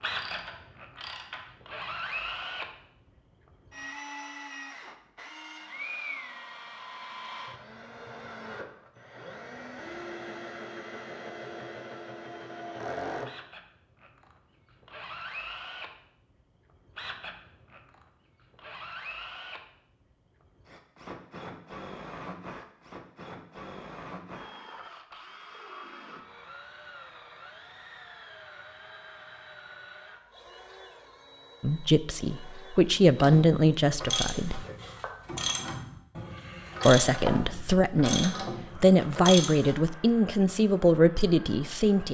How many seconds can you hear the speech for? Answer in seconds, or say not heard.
8 s.